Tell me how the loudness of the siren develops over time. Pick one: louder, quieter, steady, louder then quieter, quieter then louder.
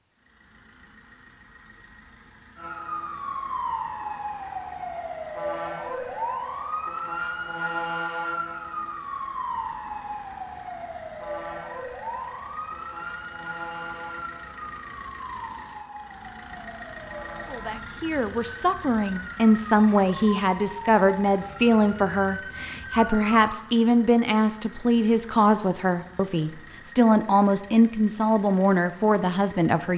quieter.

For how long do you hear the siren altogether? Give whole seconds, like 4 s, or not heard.
21 s.